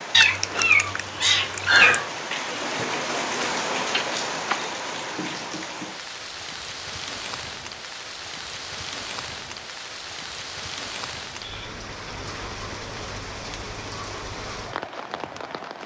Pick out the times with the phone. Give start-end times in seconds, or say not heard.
3.9-4.7.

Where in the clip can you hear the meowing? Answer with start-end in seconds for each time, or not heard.
0.1-2.0.